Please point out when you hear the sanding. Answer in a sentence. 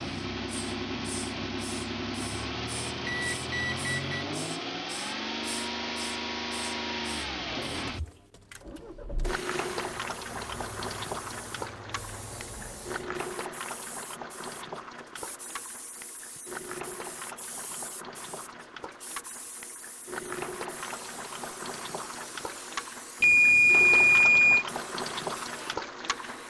The sanding can't be heard in this clip.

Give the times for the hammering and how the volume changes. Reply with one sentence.
The hammering can't be heard in this clip.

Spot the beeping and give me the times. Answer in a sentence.
You can hear the beeping from 3.0 to 4.1 s and from 23.2 to 24.6 s.